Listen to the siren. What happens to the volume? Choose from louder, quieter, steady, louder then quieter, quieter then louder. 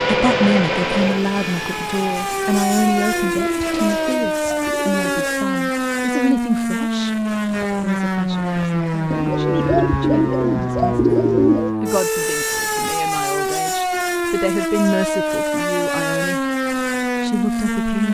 steady.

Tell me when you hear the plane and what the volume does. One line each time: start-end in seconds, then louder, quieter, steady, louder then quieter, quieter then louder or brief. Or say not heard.
0.0-4.2 quieter.